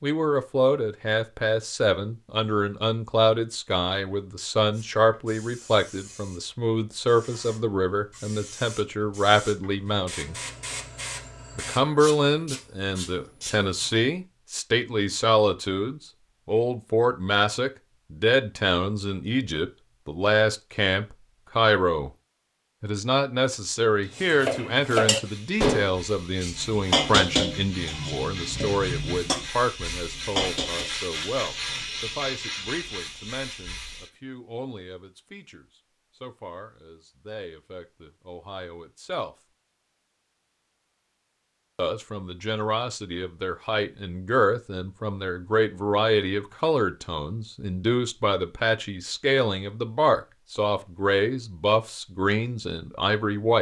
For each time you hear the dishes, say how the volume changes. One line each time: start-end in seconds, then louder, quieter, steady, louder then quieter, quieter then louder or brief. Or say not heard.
24.2-30.9 quieter.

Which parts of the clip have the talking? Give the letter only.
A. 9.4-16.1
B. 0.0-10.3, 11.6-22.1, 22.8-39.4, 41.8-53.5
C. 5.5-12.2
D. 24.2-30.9
B.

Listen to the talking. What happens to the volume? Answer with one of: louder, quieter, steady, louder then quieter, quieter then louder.
quieter then louder.